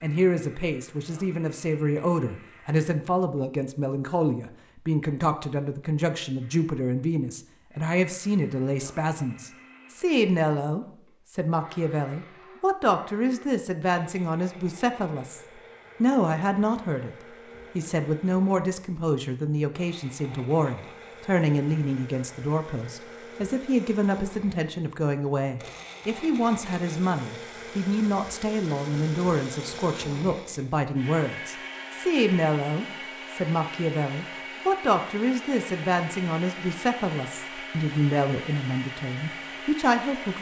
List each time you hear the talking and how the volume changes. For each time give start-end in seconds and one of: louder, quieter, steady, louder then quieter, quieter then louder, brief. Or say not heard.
0.0-17.1 steady
17.8-40.3 steady.